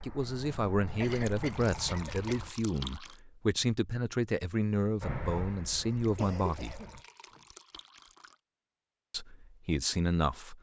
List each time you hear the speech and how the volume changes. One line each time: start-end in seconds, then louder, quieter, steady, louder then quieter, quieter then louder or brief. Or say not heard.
0.0-6.8 steady
9.1-10.5 brief.